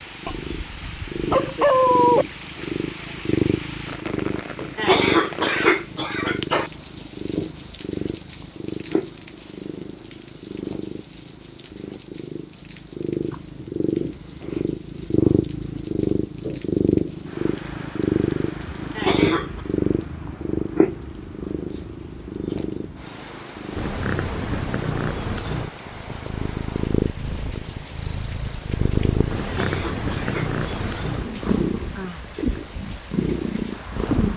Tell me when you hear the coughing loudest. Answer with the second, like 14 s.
5 s.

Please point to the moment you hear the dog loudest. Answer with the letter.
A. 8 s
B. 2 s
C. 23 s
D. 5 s
B.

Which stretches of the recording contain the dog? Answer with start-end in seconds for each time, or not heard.
0.2-2.2.